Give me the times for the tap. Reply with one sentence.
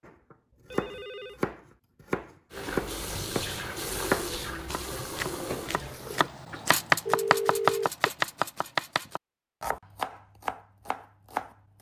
You can hear the tap from 2.5 to 6.3 s.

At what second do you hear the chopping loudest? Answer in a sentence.
The volume of the chopping peaks at 7 seconds.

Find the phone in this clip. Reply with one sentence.
The phone can be heard from 0.7 to 1.4 s and from 6.5 to 8.1 s.